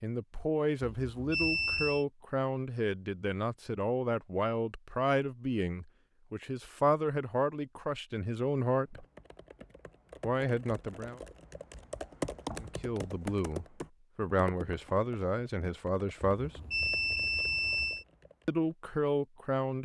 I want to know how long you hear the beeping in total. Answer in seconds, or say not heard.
3 s.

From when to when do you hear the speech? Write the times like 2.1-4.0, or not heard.
0.0-9.1, 10.2-11.2, 12.6-16.5, 18.4-19.7.